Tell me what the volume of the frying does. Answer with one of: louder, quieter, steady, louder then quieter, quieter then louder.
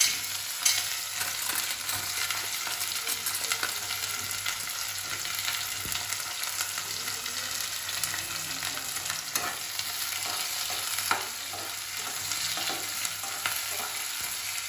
steady.